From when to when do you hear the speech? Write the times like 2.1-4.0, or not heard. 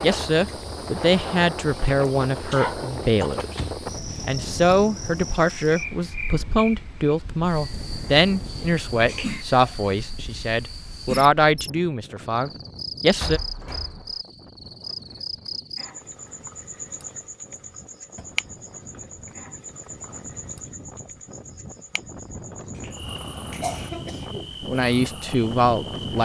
0.0-3.6, 4.2-13.4, 24.6-26.2.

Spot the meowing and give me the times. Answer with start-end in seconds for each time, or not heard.
not heard.